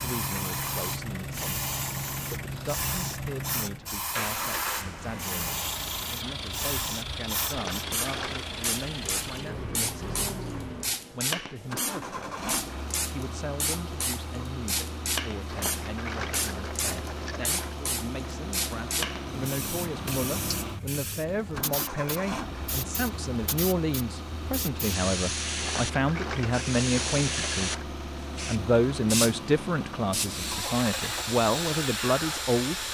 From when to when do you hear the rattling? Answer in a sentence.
You can hear the rattling from 7.5 to 8.5 s, from 15.4 to 17.8 s and from 25.6 to 27.9 s.